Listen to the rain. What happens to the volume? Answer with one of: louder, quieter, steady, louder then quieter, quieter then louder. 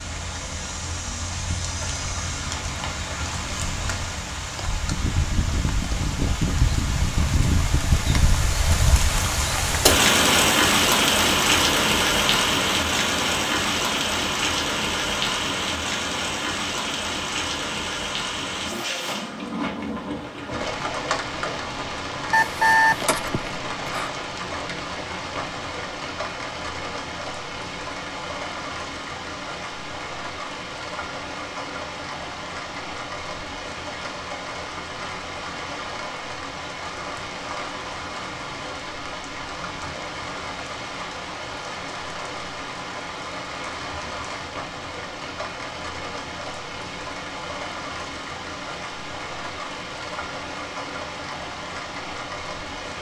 quieter.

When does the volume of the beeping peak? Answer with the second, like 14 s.
23 s.